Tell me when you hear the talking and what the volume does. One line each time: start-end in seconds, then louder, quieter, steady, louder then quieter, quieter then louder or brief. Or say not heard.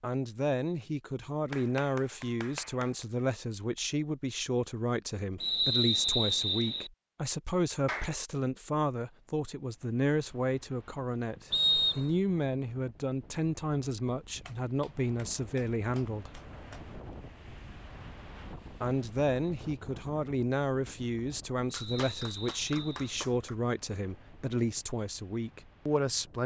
0.0-16.4 steady
18.8-26.4 steady.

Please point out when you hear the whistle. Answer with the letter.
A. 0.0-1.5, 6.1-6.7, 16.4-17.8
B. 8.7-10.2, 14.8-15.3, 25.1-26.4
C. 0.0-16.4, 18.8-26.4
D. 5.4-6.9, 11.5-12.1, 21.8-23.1
D.